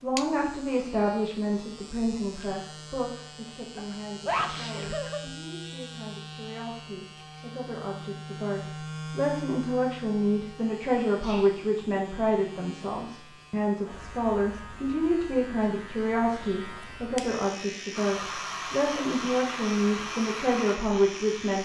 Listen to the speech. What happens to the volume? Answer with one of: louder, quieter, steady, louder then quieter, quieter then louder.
quieter then louder.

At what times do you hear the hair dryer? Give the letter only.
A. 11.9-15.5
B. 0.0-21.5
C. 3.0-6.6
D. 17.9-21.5
D.